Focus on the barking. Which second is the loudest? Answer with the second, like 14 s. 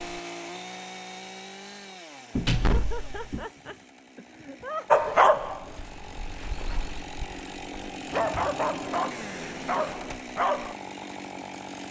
5 s.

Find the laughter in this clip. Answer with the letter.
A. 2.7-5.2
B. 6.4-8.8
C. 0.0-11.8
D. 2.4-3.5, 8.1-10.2
A.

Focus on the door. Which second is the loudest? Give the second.
3 s.